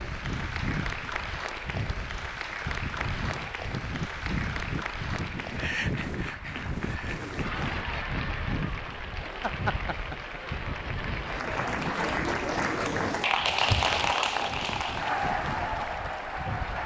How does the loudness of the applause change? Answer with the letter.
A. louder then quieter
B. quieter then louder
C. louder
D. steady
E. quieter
C.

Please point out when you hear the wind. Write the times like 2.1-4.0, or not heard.
0.0-16.8.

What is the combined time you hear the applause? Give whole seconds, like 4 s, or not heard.
17 s.